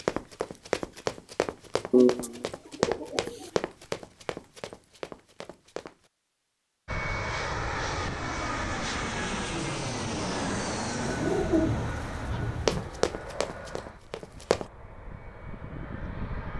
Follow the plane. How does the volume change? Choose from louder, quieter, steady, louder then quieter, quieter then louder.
quieter.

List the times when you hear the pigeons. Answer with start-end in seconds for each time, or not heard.
1.9-3.5, 11.0-12.9.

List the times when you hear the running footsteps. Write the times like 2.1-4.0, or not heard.
0.0-6.0, 12.7-14.7.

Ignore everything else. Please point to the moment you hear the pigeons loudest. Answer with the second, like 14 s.
2 s.